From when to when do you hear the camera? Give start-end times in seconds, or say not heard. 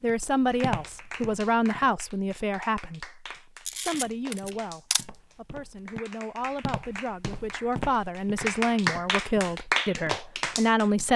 3.6-5.0.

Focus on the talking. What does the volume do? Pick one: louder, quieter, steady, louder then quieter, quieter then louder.
quieter then louder.